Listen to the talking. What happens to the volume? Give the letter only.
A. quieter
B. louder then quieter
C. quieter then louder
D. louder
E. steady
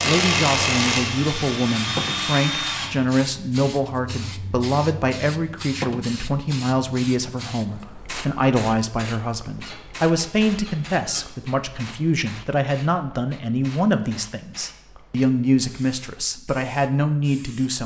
E.